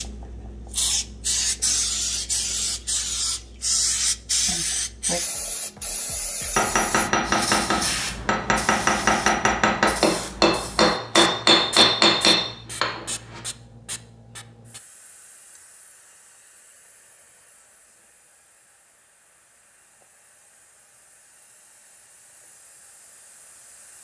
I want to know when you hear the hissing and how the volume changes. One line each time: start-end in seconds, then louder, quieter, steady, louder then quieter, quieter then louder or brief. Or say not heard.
0.0-23.9 quieter.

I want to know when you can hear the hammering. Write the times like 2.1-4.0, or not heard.
6.5-13.4.